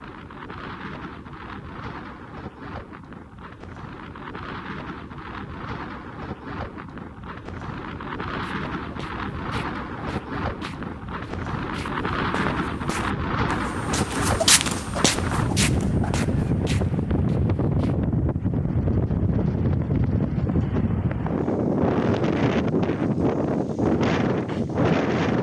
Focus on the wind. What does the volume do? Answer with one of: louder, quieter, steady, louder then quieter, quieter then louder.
louder.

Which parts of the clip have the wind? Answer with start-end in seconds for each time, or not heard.
0.0-25.3.